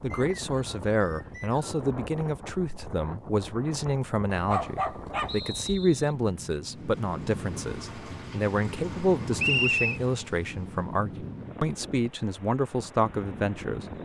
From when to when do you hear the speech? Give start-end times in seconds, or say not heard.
0.0-13.8.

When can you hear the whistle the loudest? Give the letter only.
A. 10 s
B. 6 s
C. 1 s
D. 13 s
A.